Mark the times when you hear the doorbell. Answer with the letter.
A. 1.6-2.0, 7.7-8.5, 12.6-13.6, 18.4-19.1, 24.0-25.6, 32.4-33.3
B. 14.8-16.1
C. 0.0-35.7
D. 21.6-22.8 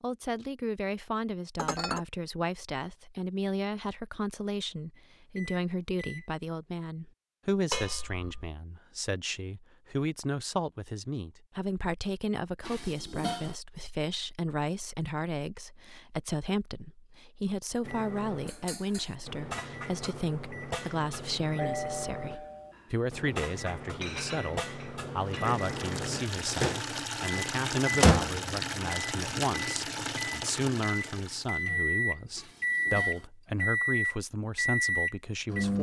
D.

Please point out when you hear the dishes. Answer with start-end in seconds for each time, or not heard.
1.6-2.0, 7.7-8.5, 12.6-13.6, 18.4-19.1, 24.0-25.6, 32.4-33.3.